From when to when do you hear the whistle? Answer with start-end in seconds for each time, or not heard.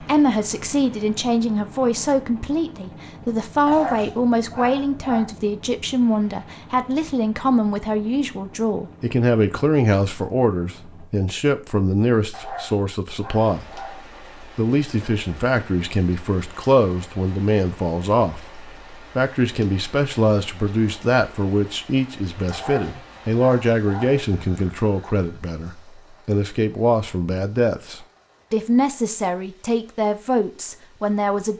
not heard.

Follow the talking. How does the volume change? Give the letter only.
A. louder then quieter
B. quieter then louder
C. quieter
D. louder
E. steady
E.